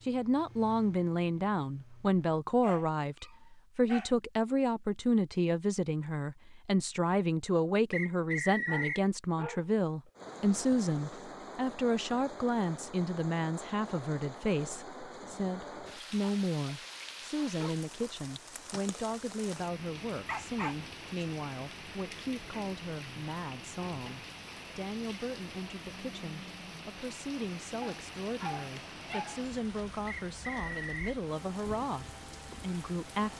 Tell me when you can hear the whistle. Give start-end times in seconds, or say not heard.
7.9-9.1, 30.1-31.1.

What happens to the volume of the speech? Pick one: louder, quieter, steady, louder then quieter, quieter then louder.
quieter.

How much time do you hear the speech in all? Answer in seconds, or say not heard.
33 s.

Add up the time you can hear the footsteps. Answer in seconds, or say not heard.
not heard.